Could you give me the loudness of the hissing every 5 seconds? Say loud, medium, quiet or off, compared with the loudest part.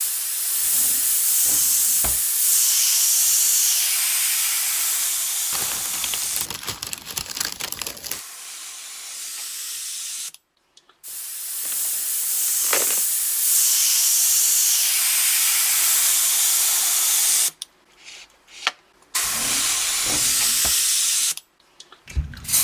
loud, medium, loud, loud, loud.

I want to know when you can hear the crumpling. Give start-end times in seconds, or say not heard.
5.5-8.2, 11.7-13.1.